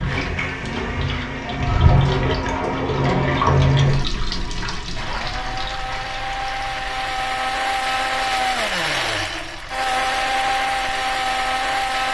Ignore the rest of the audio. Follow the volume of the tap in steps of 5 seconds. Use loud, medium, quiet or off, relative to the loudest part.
loud, quiet, quiet.